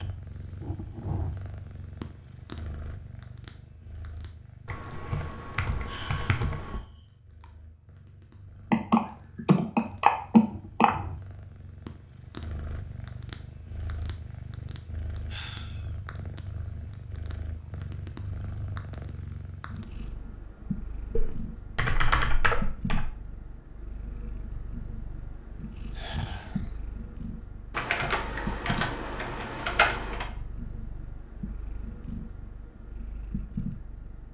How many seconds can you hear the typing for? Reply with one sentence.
The typing can be heard for 9 seconds in total.